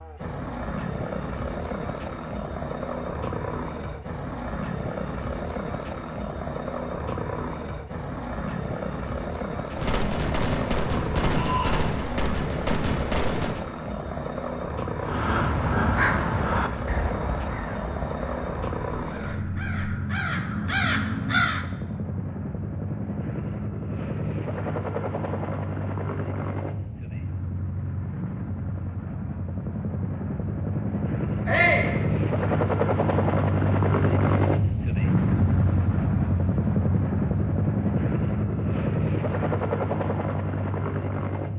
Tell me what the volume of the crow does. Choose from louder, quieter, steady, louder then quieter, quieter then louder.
quieter then louder.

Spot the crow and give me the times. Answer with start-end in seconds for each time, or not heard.
14.9-21.6.